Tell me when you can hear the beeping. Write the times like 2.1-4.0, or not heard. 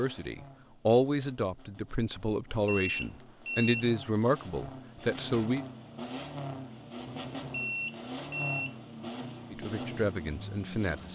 2.6-3.9, 7.5-8.8.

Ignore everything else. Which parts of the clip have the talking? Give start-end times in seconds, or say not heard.
0.0-5.7, 9.5-11.1.